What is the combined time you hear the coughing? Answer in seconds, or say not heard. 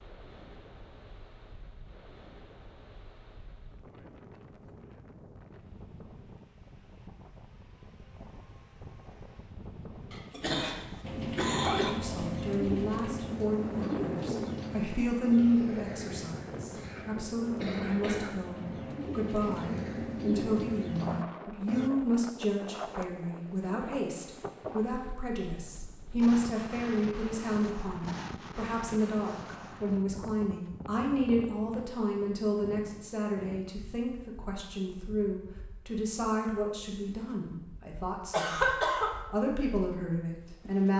4 s.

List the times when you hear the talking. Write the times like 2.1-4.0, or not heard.
11.8-38.6, 39.3-40.9.